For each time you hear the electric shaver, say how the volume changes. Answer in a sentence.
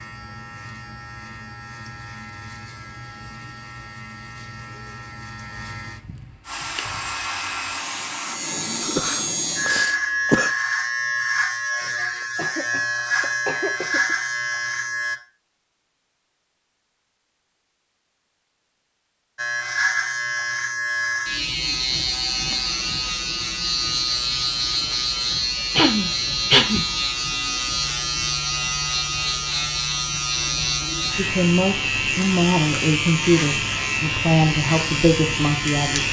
The electric shaver can be heard from 0.0 to 15.2 s, getting louder; and from 19.4 to 36.0 s, at a steady volume.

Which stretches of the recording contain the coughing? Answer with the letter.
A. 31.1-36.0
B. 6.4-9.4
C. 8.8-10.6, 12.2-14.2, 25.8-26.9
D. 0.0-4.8
C.